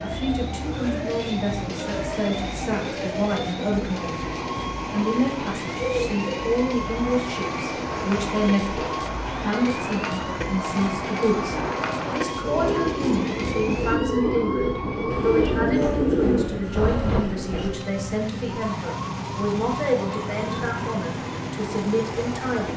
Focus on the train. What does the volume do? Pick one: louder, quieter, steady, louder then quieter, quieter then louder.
steady.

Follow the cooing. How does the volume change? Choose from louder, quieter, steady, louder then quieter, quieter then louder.
louder.